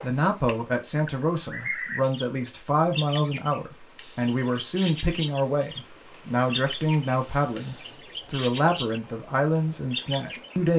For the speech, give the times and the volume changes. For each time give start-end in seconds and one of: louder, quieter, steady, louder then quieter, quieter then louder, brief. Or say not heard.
0.0-10.7 steady.